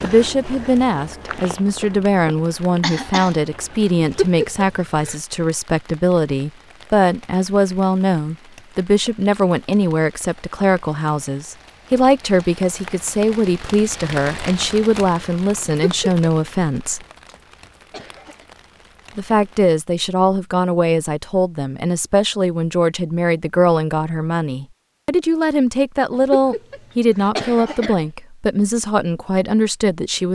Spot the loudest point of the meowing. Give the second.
4 s.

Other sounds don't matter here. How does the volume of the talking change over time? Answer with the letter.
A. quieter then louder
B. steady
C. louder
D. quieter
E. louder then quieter
B.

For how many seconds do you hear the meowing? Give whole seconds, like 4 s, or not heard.
3 s.